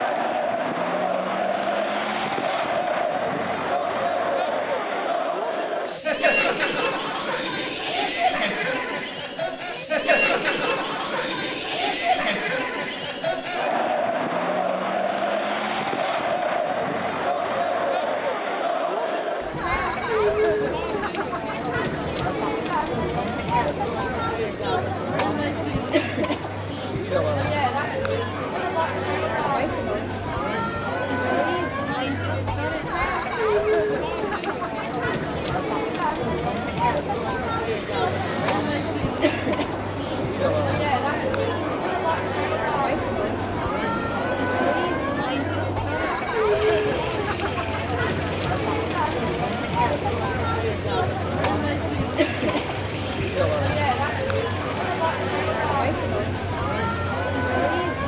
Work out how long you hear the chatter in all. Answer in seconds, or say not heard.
58 s.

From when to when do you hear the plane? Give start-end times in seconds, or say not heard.
37.6-58.0.